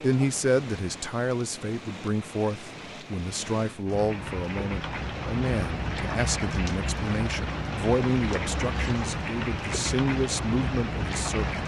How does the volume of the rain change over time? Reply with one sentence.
The volume of the rain goes up.